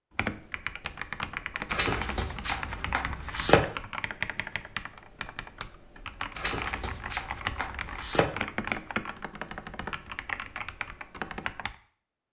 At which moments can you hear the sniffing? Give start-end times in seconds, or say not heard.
not heard.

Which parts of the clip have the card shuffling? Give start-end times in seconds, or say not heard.
1.7-3.6, 6.3-8.2.